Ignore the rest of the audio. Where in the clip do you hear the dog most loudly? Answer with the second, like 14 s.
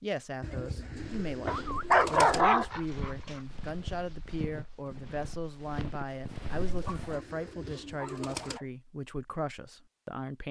2 s.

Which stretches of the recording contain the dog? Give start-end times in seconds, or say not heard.
1.4-3.4, 6.7-8.7.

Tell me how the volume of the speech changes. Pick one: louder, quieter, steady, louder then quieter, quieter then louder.
steady.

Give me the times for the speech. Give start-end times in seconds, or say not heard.
0.0-10.4.